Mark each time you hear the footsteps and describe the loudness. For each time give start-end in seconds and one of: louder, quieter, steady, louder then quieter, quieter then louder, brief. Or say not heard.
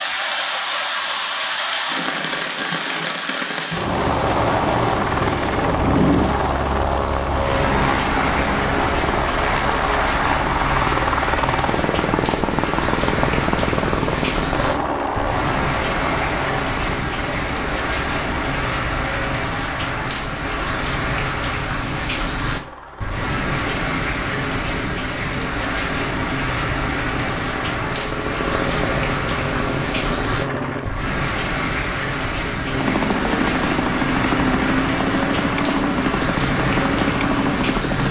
not heard.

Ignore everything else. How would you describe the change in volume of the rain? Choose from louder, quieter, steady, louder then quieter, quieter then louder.
steady.